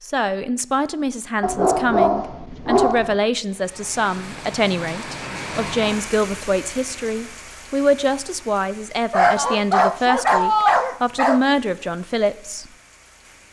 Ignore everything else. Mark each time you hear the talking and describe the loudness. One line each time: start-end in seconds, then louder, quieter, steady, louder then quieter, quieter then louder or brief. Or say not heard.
0.0-12.7 steady.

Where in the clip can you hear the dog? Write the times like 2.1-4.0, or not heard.
1.4-3.1, 9.1-11.4.